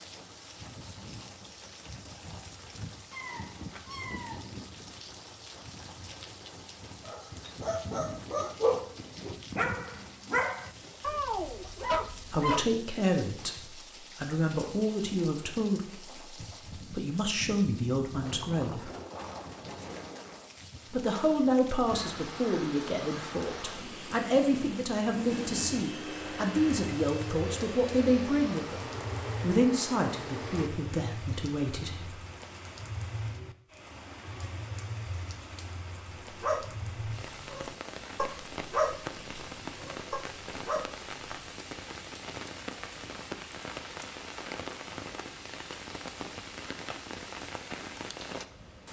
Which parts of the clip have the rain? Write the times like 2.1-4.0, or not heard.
0.0-48.8.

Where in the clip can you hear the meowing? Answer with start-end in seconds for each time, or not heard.
3.1-4.4.